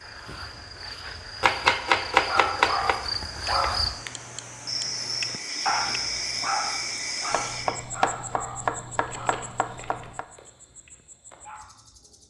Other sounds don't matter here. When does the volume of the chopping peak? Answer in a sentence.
The volume of the chopping peaks at 2 seconds.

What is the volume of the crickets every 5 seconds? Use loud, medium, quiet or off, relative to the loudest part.
loud, loud, quiet.